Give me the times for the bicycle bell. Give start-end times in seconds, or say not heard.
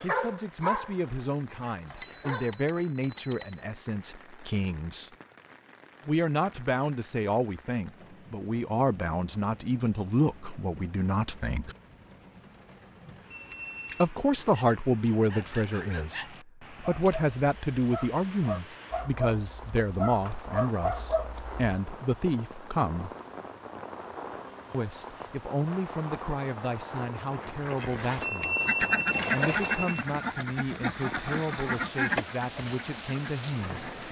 1.9-3.6, 13.3-14.1, 28.2-30.1.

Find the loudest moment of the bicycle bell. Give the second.
29 s.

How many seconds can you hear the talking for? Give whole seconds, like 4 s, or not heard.
29 s.